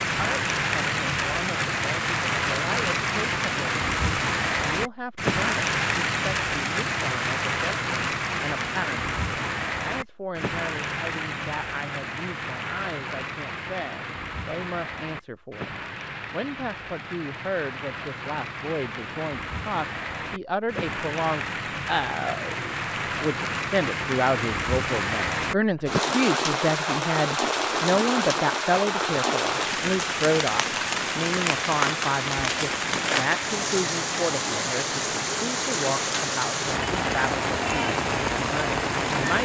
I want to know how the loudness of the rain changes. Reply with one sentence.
The volume of the rain goes down, then up.